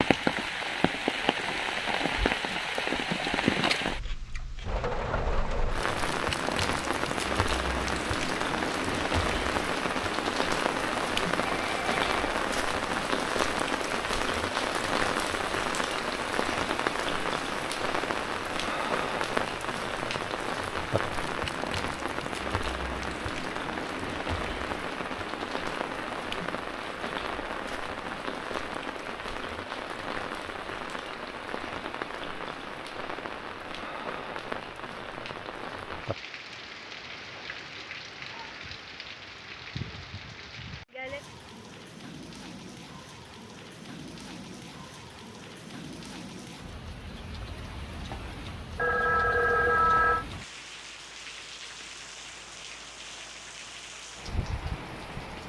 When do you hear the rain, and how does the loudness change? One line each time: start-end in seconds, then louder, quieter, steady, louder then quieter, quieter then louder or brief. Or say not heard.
0.0-55.4 quieter.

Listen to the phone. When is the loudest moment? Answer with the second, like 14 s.
50 s.